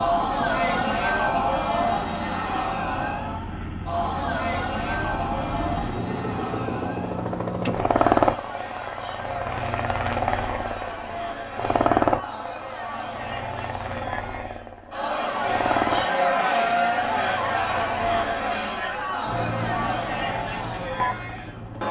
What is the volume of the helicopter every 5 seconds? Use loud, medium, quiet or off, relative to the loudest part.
medium, loud, loud, medium, medium.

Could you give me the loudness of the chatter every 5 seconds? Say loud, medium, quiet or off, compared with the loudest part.
loud, medium, medium, loud, medium.